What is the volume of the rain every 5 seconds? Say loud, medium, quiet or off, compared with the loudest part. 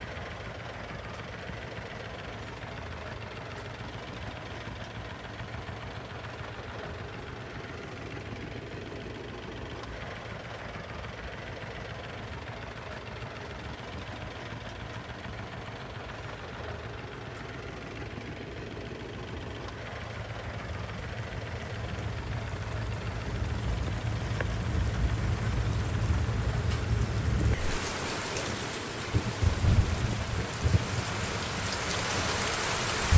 quiet, quiet, quiet, quiet, medium, loud, loud.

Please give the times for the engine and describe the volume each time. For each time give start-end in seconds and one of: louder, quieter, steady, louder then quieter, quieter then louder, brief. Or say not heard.
0.0-33.0 steady.